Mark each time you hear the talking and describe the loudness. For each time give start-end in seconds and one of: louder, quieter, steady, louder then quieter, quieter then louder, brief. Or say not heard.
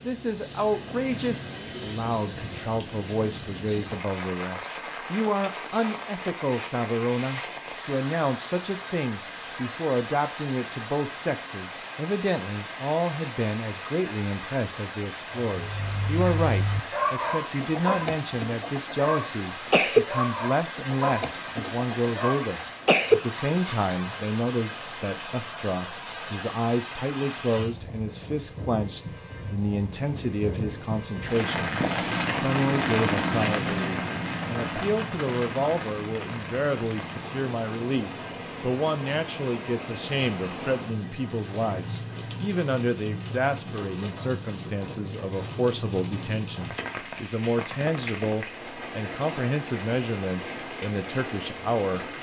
0.0-52.1 steady.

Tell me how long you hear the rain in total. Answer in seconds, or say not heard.
52 s.